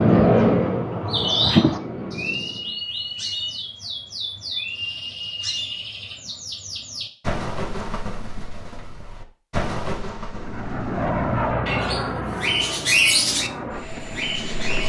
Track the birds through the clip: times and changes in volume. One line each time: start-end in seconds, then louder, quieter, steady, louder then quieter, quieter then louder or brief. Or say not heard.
0.0-14.8 quieter then louder.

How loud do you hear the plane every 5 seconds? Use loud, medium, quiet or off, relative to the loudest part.
loud, off, medium.